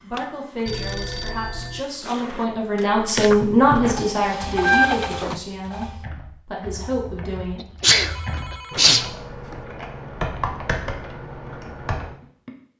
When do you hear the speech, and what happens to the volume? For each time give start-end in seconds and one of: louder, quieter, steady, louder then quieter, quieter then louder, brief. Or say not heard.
0.0-7.7 louder then quieter.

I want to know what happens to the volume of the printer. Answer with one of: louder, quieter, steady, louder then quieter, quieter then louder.
louder.